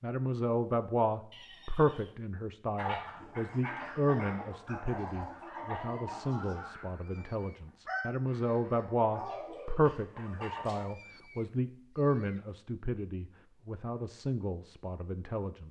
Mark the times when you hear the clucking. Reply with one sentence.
You can hear the clucking from 2.8 to 10.8 s.